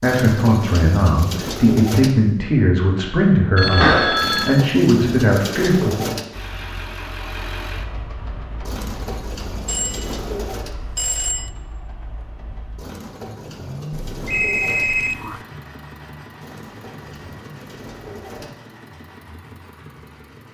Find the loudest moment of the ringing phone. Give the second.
4 s.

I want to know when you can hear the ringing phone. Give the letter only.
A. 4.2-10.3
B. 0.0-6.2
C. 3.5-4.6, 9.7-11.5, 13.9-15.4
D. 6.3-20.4
C.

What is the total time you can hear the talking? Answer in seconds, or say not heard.
6 s.